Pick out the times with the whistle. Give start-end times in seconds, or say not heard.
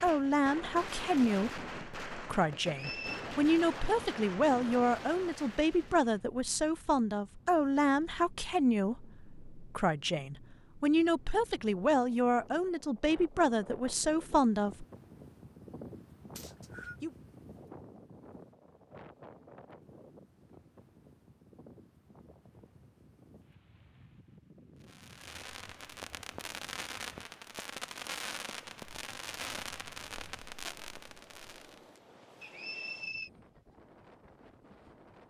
2.6-3.3, 16.4-16.9, 32.4-33.3.